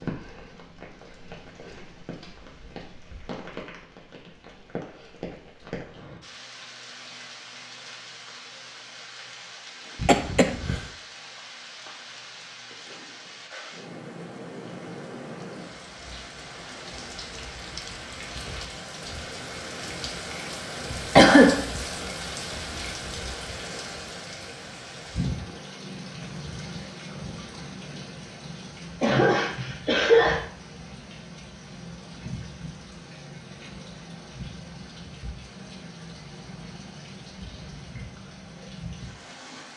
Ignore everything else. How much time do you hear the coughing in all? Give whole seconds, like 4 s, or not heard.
3 s.